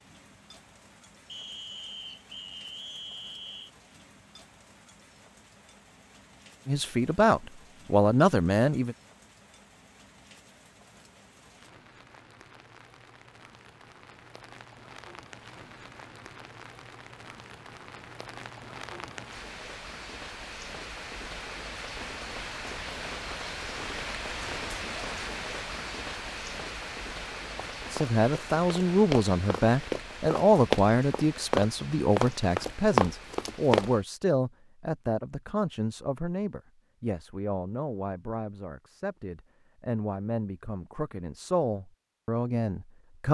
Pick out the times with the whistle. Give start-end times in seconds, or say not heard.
1.2-3.7.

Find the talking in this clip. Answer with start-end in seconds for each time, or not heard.
6.7-8.9, 27.9-43.2.